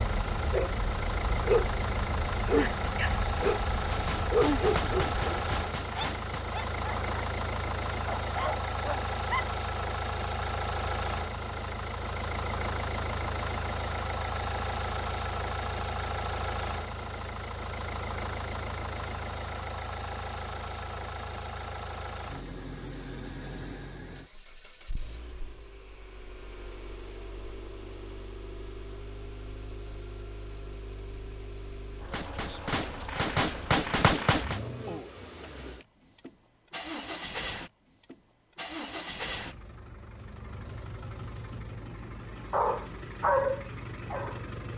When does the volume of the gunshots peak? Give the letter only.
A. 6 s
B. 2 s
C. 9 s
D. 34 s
D.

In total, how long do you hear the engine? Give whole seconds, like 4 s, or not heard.
45 s.